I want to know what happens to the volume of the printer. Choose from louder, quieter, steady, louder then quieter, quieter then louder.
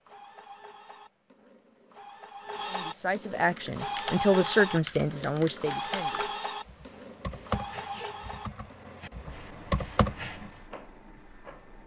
louder then quieter.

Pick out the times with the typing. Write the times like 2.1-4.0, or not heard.
3.4-10.5.